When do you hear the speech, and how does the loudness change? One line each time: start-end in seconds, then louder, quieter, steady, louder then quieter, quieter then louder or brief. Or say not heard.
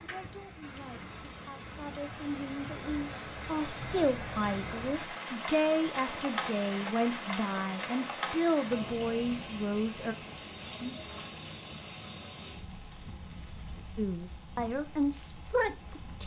0.0-10.2 louder
13.9-16.2 brief.